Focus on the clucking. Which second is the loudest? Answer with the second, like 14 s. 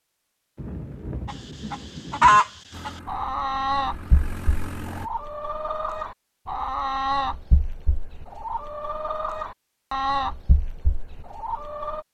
2 s.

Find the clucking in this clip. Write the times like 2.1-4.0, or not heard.
1.2-12.0.